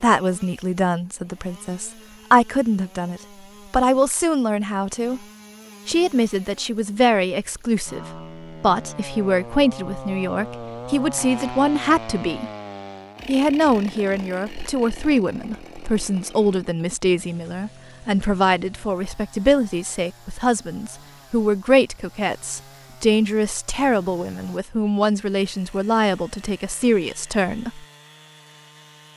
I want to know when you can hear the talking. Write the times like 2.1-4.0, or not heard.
0.0-5.2, 5.8-12.5, 13.2-27.9.